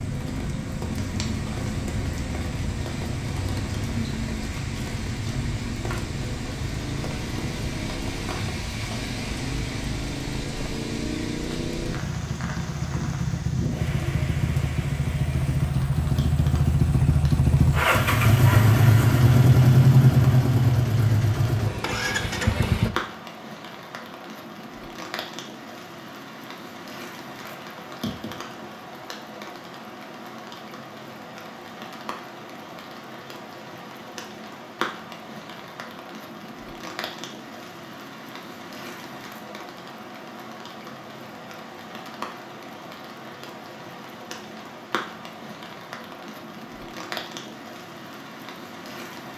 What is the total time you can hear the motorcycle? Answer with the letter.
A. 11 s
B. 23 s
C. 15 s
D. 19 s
B.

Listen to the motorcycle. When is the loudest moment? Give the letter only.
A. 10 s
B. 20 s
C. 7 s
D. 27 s
B.